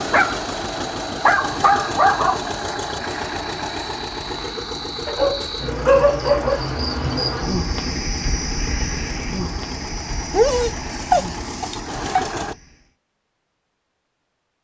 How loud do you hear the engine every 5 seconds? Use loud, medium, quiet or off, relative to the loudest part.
loud, medium, loud.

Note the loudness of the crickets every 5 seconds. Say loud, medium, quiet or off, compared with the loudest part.
medium, loud, medium.